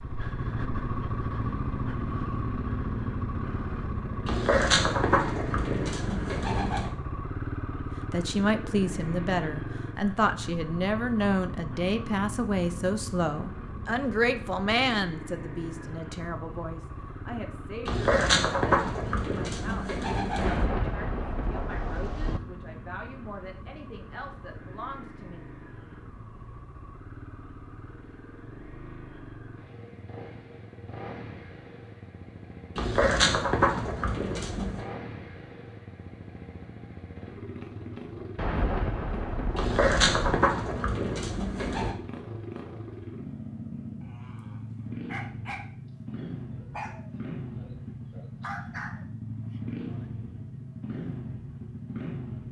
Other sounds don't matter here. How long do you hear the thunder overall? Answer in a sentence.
You can hear the thunder for 4 seconds altogether.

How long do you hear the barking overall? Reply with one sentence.
You can hear the barking for 5 seconds altogether.